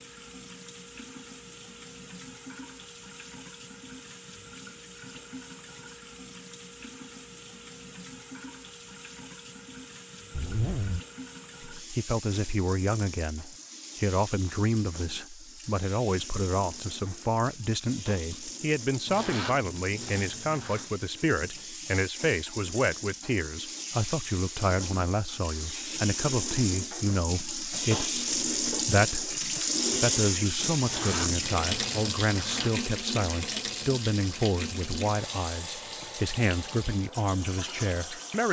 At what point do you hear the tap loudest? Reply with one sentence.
The loudest moment of the tap is at 30 seconds.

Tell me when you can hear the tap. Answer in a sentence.
You can hear the tap from 0.0 to 38.4 s.